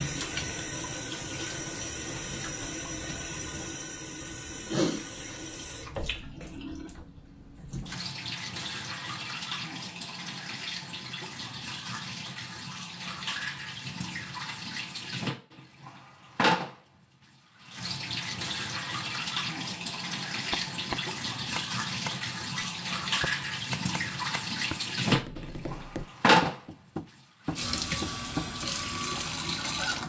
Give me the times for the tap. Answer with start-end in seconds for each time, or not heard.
0.0-30.0.